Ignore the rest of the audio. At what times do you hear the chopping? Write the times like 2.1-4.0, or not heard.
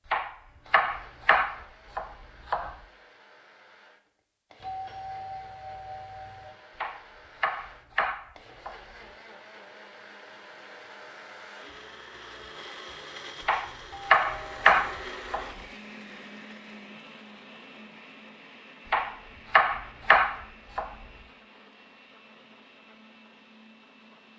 0.1-2.8, 6.8-8.8, 13.4-15.4, 18.9-20.9.